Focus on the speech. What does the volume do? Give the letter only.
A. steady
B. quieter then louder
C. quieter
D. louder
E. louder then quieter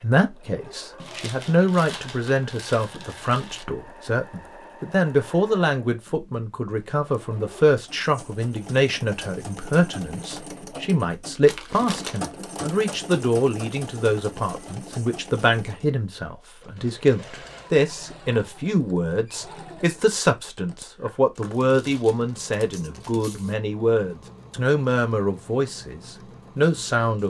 A.